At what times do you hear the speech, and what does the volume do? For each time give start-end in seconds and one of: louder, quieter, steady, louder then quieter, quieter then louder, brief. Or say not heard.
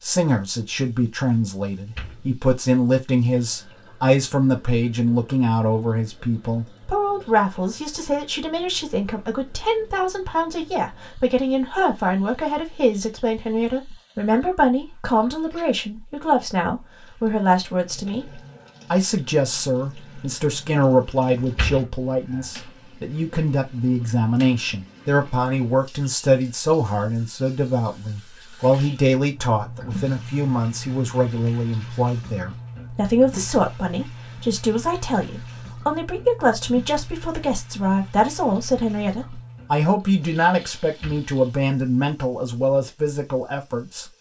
0.0-44.0 steady.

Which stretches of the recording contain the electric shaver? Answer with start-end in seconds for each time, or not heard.
not heard.